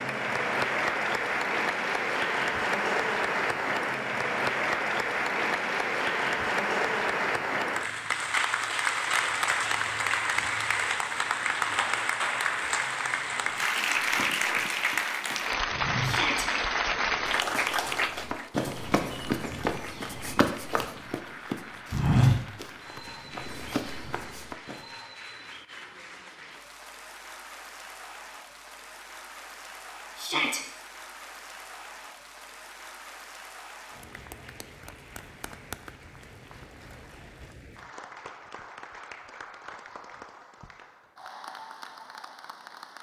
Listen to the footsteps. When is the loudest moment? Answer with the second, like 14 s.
22 s.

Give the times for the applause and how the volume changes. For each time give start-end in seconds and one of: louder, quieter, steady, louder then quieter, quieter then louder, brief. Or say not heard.
0.0-42.9 quieter.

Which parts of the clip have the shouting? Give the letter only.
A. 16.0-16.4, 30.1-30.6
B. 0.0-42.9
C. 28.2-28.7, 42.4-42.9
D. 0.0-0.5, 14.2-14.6
A.